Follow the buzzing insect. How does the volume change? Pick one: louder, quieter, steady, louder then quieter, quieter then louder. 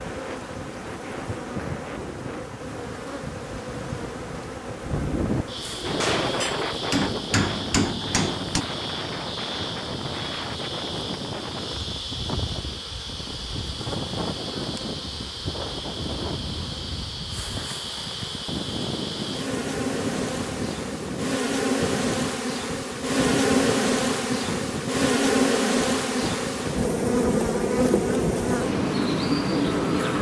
louder.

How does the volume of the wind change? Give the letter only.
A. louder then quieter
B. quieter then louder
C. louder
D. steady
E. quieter
D.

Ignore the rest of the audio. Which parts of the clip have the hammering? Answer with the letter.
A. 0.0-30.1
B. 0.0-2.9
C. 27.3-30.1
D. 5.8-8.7
D.